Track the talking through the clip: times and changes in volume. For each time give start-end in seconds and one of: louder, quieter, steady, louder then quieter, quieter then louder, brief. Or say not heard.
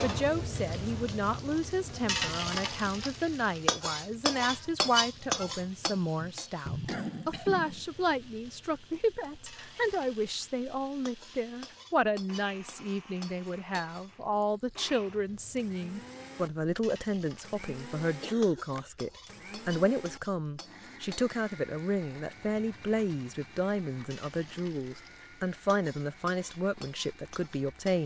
0.0-28.0 steady.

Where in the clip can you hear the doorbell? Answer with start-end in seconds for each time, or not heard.
not heard.